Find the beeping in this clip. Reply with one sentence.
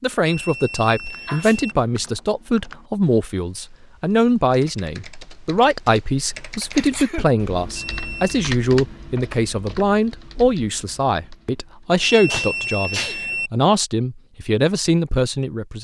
The beeping can be heard from 0.2 to 1.8 s, from 7.8 to 8.2 s and from 12.0 to 13.5 s.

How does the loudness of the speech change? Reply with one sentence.
The volume of the speech stays about the same.